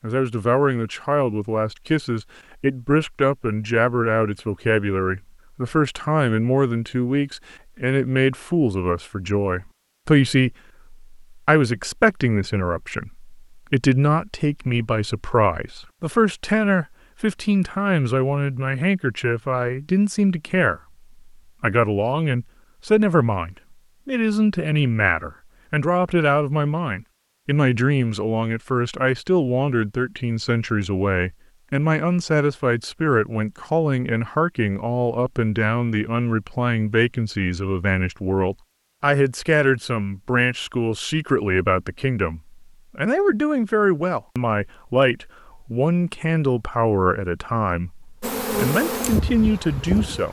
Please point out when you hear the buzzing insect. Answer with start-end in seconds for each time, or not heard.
48.2-50.2.